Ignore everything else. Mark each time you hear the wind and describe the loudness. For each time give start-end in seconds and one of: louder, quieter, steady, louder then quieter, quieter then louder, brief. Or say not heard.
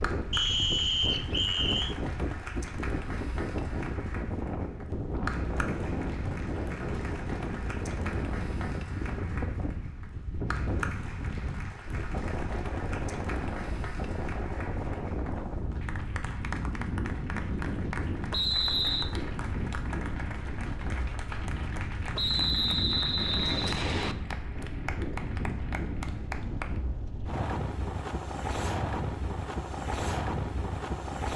0.0-31.3 steady.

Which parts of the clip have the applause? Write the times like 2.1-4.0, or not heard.
0.0-26.8.